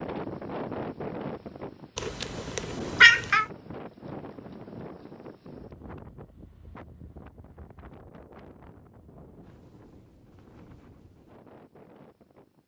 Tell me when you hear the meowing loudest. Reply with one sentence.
The volume of the meowing peaks at 3 seconds.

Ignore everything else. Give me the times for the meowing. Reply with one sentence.
The meowing can be heard from 1.9 to 3.5 s.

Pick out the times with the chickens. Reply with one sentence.
You can't hear the chickens here.